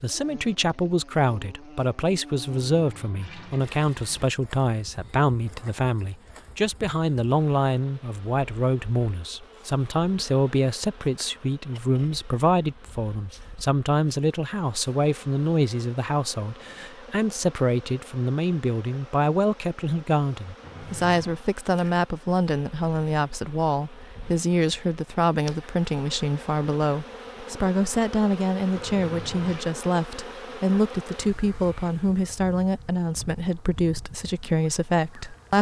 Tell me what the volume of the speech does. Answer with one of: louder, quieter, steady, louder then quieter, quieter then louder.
steady.